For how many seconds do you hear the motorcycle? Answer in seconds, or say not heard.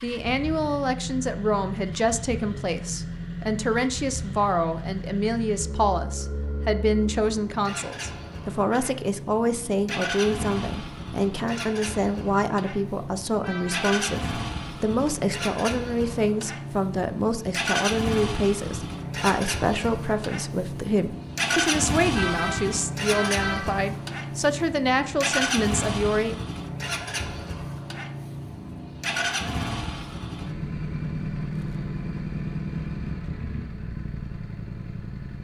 35 s.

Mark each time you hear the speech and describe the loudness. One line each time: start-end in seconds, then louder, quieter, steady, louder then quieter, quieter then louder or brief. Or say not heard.
0.0-26.4 steady.